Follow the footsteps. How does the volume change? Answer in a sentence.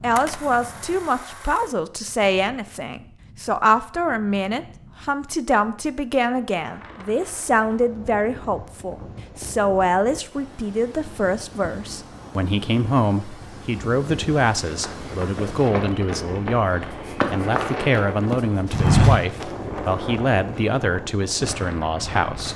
The loudness of the footsteps goes up.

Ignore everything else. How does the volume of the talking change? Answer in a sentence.
The loudness of the talking stays about the same.